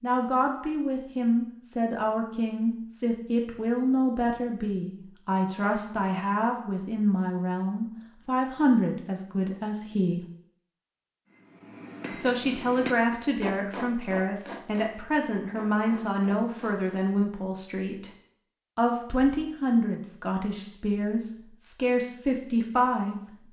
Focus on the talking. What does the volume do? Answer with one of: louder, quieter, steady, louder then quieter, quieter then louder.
steady.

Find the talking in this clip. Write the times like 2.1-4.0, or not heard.
0.0-10.2, 12.2-18.1, 18.8-23.4.